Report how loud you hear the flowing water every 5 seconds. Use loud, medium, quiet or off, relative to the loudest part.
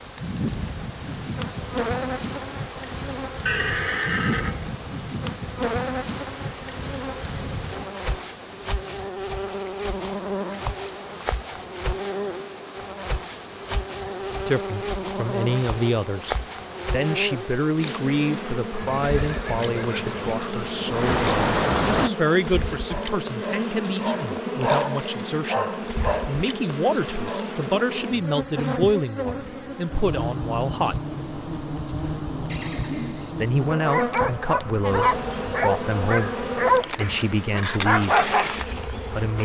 quiet, quiet, quiet, quiet, loud, off, off, off.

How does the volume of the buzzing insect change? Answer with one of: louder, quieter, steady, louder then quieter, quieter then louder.
steady.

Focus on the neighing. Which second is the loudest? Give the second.
4 s.